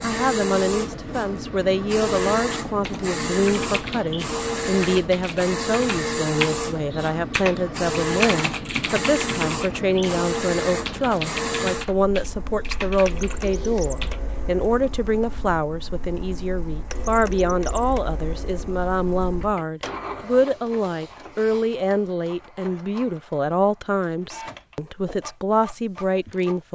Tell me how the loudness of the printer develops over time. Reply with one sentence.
The volume of the printer goes down.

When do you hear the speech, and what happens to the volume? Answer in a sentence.
The speech can be heard from 0.0 to 26.6 s, at a steady volume.